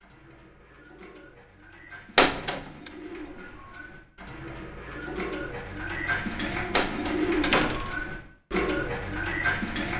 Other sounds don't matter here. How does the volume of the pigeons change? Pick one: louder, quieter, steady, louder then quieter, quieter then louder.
louder.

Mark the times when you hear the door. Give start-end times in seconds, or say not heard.
2.1-2.9, 6.8-8.1.